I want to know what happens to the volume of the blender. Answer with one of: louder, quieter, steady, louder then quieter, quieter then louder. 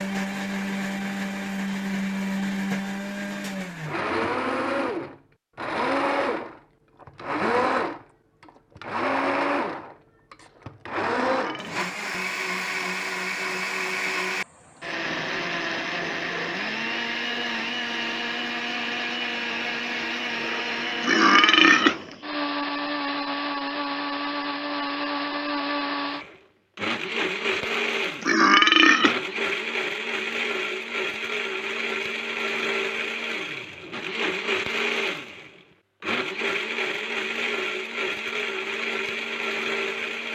steady.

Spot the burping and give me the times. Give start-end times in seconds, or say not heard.
10.4-11.7, 20.4-21.9, 27.6-29.1.